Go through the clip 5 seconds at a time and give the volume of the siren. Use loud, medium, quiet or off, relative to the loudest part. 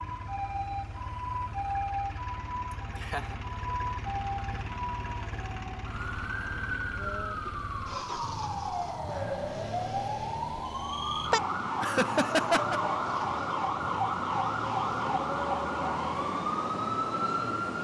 medium, medium, loud, loud.